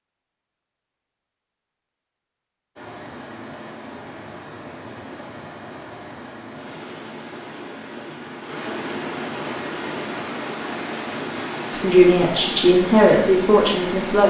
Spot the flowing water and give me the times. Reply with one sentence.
The flowing water can be heard from 2.8 to 14.2 s.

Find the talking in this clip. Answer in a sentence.
The talking can be heard from 11.7 to 14.2 s.